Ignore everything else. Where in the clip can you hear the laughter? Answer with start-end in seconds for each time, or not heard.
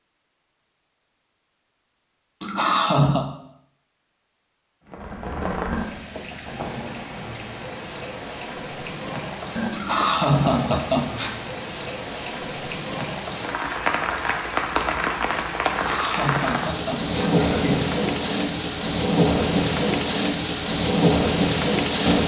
2.4-3.2, 9.7-11.3, 15.7-17.9.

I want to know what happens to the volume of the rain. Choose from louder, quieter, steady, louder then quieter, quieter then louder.
louder.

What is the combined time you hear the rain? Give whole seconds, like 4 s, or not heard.
17 s.